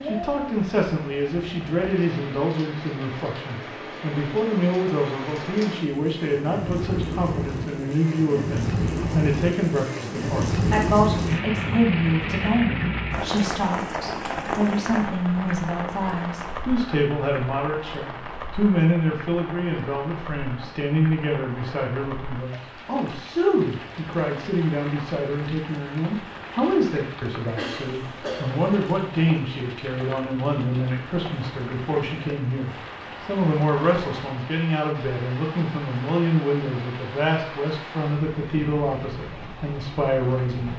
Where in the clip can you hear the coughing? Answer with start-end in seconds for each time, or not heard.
27.6-28.7.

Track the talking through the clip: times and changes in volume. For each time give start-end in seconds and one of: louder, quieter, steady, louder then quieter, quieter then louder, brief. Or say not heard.
0.0-40.7 steady.